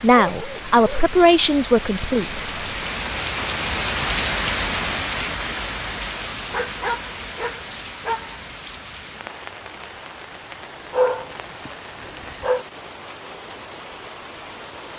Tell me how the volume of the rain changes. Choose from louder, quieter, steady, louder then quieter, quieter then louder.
louder then quieter.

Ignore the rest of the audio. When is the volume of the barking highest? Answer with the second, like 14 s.
11 s.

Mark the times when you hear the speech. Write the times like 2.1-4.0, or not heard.
0.0-2.5.